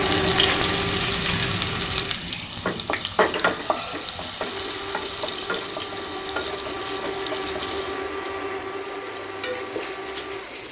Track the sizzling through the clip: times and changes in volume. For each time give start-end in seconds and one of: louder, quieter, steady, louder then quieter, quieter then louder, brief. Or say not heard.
0.0-10.6 quieter.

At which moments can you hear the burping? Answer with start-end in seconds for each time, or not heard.
not heard.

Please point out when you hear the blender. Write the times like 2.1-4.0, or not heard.
0.0-2.1, 4.4-10.6.